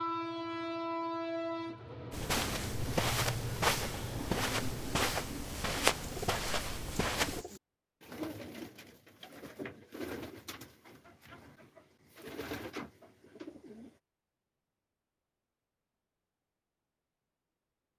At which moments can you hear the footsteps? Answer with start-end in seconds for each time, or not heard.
2.1-7.5.